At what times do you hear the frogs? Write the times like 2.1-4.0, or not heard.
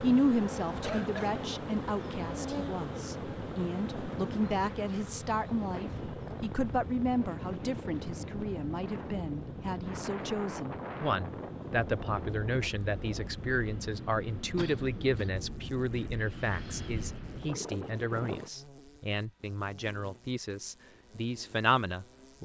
not heard.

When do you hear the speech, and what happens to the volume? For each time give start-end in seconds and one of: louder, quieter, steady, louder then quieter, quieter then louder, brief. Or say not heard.
0.0-22.3 steady.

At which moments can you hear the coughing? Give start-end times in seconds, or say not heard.
0.8-1.4, 14.6-15.3.